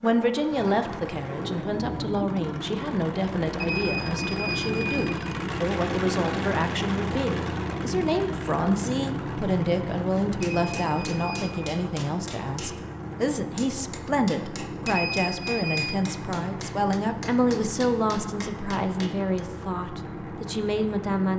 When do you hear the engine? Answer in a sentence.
You can hear the engine from 0.0 to 21.3 s.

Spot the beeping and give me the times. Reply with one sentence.
You can hear the beeping from 3.5 to 5.1 s, from 10.6 to 11.7 s and from 14.8 to 16.0 s.